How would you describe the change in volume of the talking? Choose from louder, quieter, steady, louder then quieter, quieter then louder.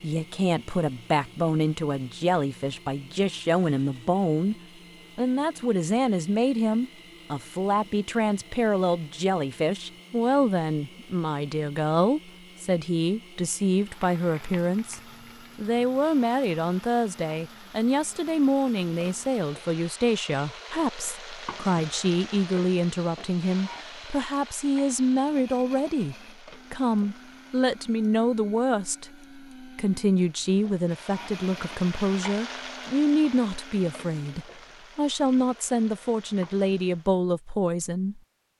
steady.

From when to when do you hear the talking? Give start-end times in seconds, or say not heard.
0.0-4.5, 5.2-38.2.